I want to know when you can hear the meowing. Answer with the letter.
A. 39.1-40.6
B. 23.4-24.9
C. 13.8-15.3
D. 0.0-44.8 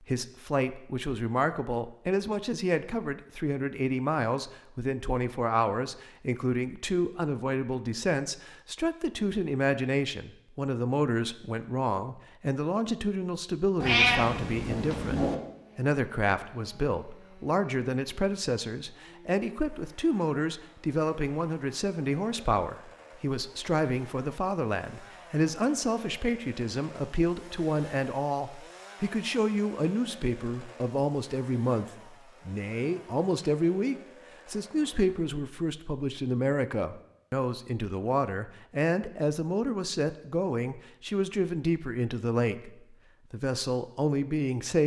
C.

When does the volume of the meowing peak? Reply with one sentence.
The loudest moment of the meowing is at 14 seconds.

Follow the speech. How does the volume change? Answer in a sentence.
The loudness of the speech stays about the same.